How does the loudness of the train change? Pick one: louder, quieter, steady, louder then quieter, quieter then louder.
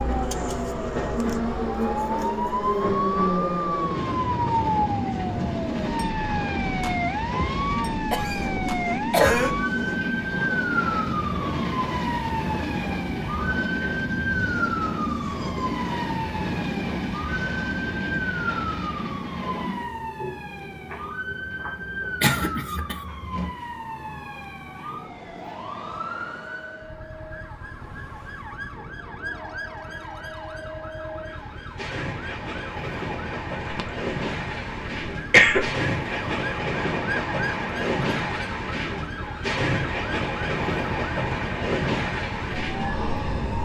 quieter then louder.